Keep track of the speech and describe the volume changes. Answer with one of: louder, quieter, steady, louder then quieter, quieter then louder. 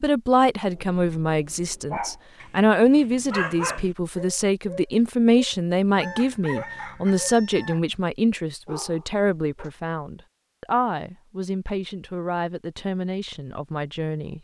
quieter.